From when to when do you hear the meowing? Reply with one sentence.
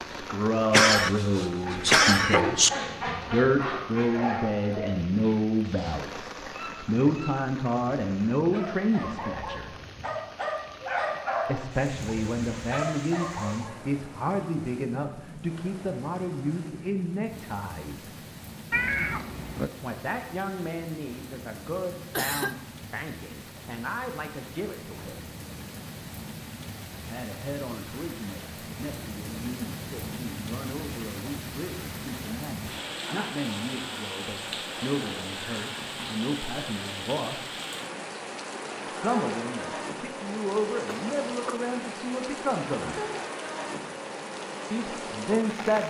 You can hear the meowing from 18.7 to 19.7 s.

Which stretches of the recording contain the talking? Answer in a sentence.
You can hear the talking from 0.1 to 9.7 s, from 11.4 to 18.1 s, from 19.8 to 25.2 s, from 27.1 to 37.5 s, from 38.9 to 43.0 s and from 44.7 to 45.8 s.